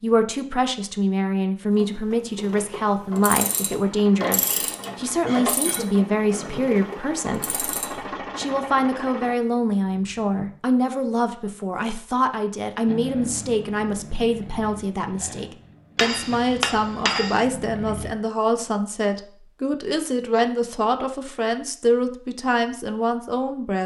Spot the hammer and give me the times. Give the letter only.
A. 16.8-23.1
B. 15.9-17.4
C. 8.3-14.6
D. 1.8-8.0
B.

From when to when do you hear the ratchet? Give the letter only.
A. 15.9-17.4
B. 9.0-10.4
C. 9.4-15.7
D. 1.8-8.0
D.